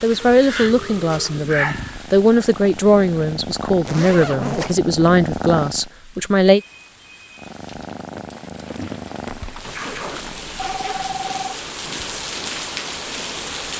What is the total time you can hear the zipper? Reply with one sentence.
The zipper can be heard for 3 seconds in total.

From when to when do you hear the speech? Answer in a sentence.
You can hear the speech from 0.0 to 6.6 s.